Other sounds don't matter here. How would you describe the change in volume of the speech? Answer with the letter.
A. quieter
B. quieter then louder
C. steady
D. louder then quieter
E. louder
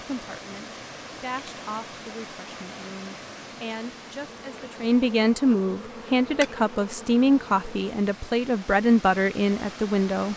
E.